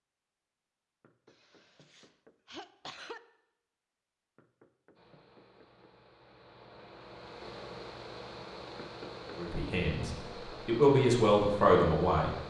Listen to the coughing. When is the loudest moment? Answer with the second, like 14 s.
3 s.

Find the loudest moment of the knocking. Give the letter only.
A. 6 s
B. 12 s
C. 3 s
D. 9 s
D.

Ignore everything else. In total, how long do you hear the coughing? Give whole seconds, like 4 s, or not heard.
2 s.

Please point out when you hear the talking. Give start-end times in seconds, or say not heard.
9.3-12.3.